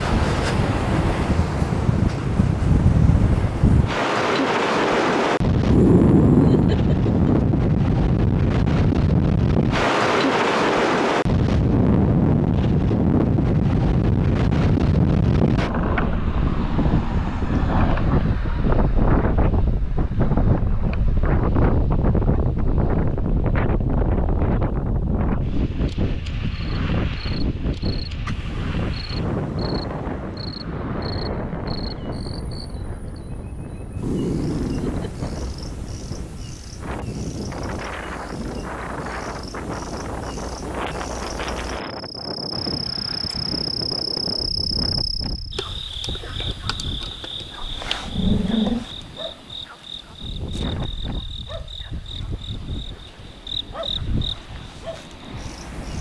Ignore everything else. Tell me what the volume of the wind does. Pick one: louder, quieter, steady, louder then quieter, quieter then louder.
quieter.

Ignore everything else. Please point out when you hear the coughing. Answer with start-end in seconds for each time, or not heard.
not heard.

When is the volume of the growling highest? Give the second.
6 s.